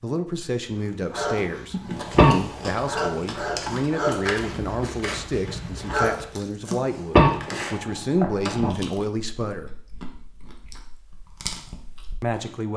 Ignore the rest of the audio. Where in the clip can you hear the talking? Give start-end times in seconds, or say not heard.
0.0-9.7, 12.2-12.7.